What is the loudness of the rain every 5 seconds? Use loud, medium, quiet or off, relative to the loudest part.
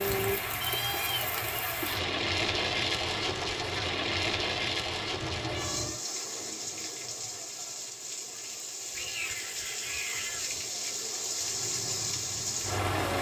loud, medium, loud.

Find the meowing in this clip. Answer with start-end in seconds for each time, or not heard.
0.6-1.9, 5.2-6.0, 8.9-10.6.